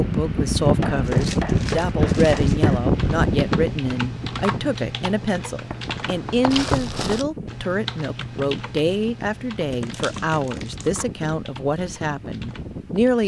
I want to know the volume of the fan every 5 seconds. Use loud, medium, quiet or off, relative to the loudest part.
loud, quiet, quiet.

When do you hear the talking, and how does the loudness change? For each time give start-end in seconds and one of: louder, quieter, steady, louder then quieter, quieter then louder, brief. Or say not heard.
0.0-13.2 steady.